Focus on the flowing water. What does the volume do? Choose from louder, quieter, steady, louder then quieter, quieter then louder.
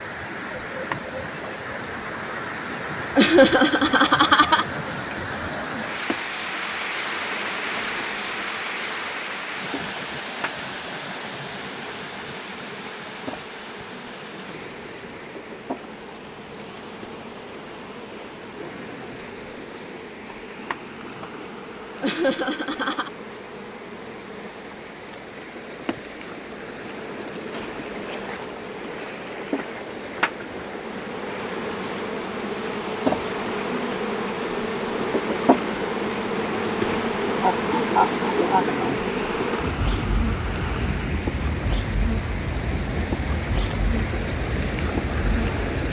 quieter then louder.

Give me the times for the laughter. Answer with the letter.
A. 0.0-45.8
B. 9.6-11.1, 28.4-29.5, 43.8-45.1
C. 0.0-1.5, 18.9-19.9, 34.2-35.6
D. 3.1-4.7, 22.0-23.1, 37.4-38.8
D.